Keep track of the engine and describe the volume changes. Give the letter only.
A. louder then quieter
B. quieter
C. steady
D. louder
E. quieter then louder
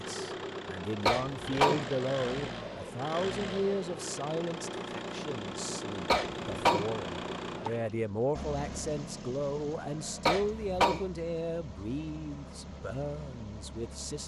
B.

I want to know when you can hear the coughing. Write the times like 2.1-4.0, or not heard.
1.1-1.9, 6.0-6.8, 10.2-11.1.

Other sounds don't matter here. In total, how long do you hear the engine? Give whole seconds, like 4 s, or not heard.
14 s.